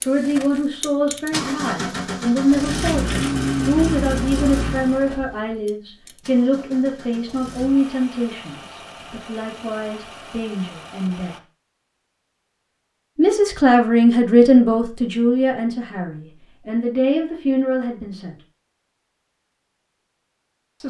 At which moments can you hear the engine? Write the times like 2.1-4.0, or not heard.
0.0-11.4.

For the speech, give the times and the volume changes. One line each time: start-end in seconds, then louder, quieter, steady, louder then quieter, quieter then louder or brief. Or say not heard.
0.1-11.3 quieter
13.2-18.4 quieter.